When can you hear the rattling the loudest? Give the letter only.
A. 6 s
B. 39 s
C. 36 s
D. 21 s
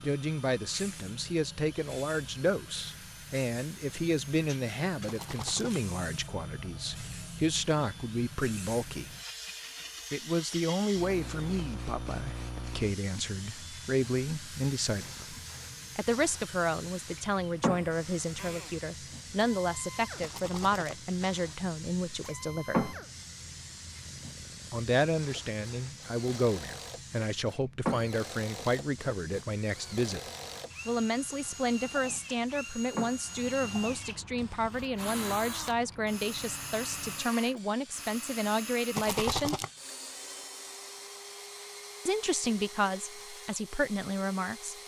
B.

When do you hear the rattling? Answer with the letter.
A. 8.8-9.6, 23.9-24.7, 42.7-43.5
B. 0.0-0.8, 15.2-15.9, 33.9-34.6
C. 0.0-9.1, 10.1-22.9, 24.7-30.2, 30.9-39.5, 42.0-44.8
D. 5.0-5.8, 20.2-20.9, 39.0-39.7
D.